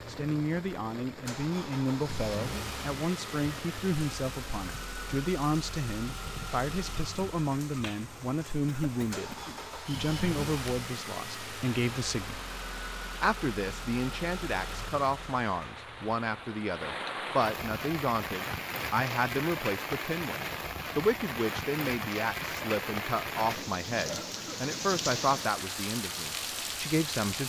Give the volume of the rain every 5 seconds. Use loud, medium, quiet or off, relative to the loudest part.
medium, medium, medium, loud, loud, loud.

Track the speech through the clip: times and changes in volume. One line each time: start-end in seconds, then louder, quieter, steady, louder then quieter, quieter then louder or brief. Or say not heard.
0.1-12.4 steady
13.2-27.4 steady.